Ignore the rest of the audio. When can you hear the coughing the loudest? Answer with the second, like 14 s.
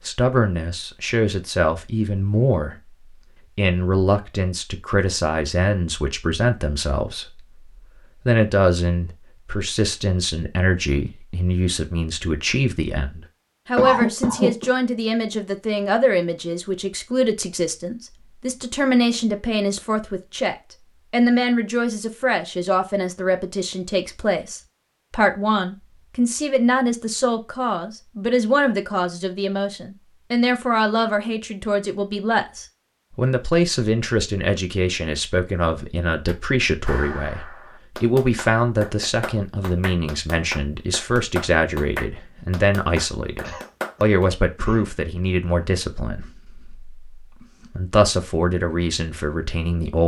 14 s.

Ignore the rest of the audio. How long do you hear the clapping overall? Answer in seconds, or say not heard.
8 s.